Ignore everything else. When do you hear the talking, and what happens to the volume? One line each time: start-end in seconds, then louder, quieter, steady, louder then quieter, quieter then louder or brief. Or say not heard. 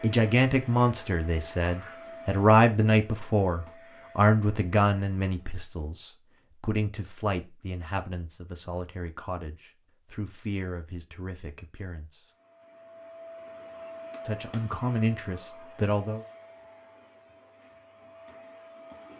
0.0-12.2 quieter
14.2-16.2 brief.